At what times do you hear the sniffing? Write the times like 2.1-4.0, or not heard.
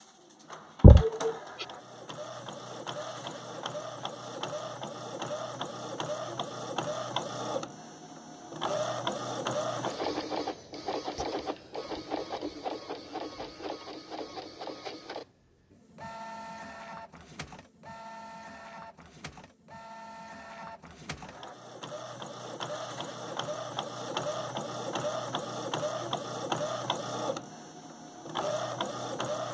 0.8-1.6.